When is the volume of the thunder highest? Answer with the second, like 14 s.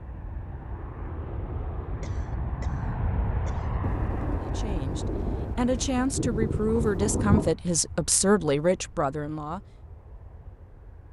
7 s.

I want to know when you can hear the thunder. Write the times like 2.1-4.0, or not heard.
3.8-7.5.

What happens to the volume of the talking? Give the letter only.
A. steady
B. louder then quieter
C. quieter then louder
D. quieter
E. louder
E.